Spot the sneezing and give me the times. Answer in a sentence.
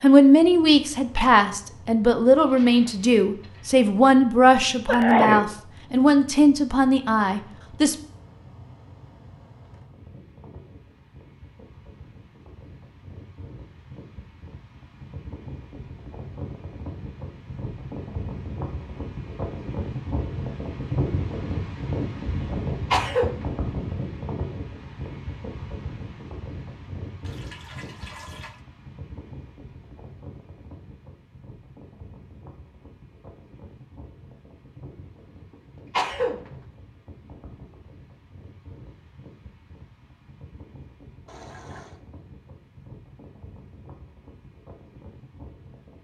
You can hear the sneezing from 4.8 to 5.5 s, from 22.9 to 23.6 s and from 35.5 to 36.6 s.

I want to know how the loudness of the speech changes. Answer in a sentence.
The loudness of the speech stays about the same.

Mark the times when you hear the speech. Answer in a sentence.
The speech can be heard from 0.0 to 8.0 s.